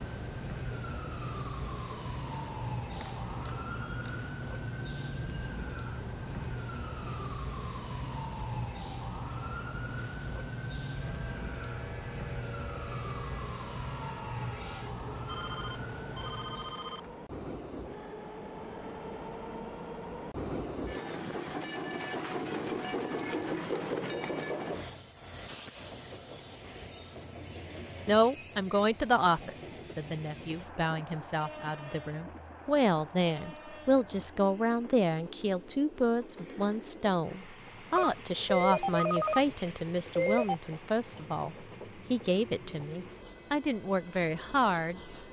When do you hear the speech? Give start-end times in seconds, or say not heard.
28.1-45.0.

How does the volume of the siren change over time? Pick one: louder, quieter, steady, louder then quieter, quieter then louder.
steady.